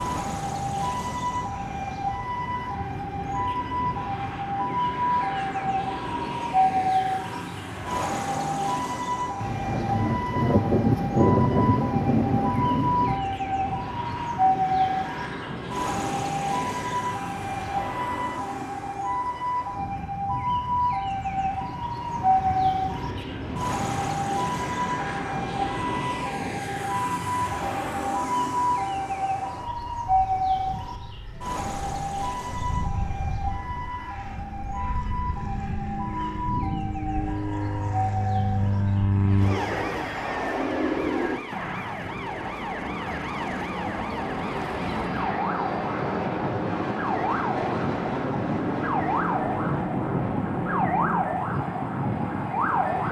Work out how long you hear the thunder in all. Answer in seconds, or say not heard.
4 s.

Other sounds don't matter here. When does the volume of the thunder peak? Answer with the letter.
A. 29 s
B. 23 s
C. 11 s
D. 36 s
C.